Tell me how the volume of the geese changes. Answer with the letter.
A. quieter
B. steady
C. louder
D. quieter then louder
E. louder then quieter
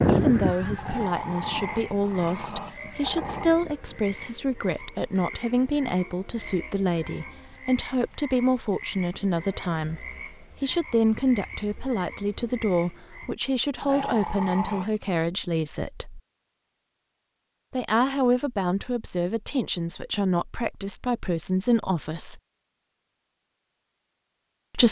D.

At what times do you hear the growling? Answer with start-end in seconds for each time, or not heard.
0.8-3.5, 13.8-15.1.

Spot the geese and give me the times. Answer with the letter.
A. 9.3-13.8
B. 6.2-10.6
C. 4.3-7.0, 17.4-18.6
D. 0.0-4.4
D.